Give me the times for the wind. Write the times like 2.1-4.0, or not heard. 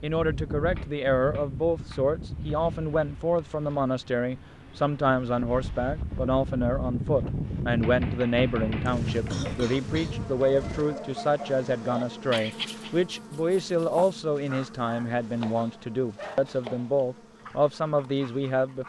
0.0-10.8.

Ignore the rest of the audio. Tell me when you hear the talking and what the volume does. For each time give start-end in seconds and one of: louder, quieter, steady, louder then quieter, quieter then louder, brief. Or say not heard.
0.0-18.8 steady.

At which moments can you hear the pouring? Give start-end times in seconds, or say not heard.
not heard.